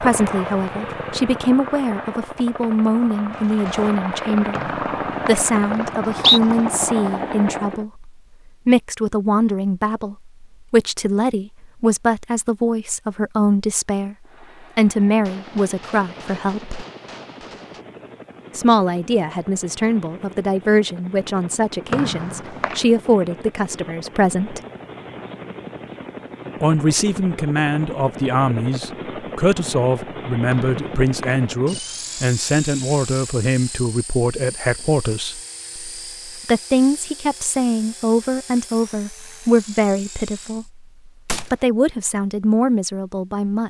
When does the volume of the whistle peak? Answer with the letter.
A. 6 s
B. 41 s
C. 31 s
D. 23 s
A.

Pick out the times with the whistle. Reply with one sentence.
The whistle can be heard from 4.5 to 6.4 s, from 21.9 to 22.8 s and from 30.5 to 31.4 s.